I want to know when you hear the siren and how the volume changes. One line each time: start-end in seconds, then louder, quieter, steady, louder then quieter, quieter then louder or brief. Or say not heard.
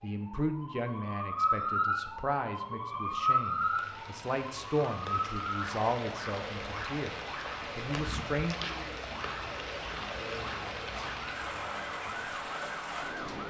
0.0-13.4 quieter.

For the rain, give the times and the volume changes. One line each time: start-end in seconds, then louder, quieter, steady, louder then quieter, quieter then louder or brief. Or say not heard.
3.4-13.4 louder.